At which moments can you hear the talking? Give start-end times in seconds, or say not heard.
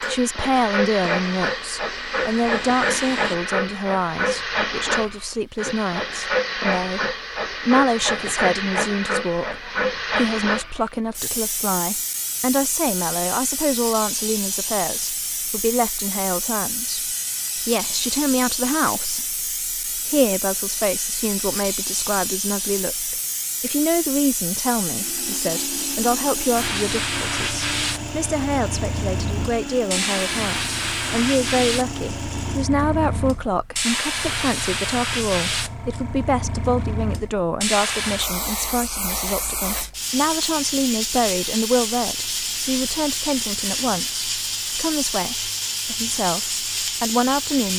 0.0-17.0, 17.6-47.7.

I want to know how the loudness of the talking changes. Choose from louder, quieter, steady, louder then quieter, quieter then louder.
steady.